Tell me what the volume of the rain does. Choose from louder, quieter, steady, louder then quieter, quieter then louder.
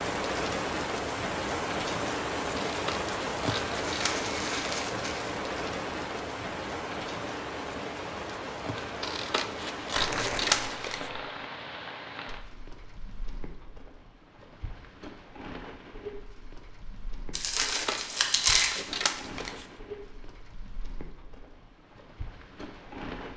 quieter.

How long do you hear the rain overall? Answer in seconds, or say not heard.
23 s.